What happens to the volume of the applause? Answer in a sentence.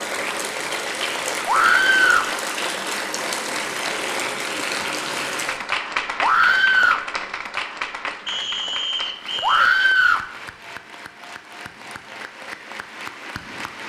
The volume of the applause goes down.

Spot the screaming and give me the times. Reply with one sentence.
The screaming can be heard from 1.4 to 2.3 s, from 6.2 to 7.0 s and from 9.4 to 10.2 s.